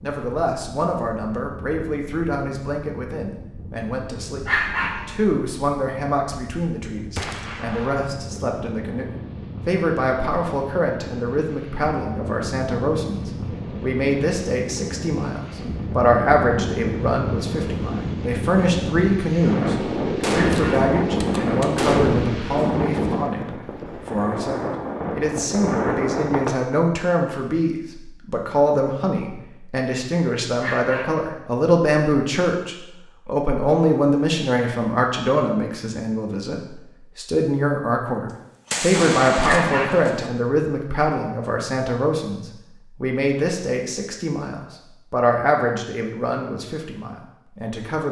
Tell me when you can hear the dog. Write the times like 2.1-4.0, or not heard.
4.5-5.1, 20.4-20.9, 30.6-31.2, 39.4-40.1.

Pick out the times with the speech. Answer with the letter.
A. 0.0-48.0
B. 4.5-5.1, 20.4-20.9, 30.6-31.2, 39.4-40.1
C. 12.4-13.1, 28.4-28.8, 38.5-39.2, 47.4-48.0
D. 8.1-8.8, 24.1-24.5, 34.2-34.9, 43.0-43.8
A.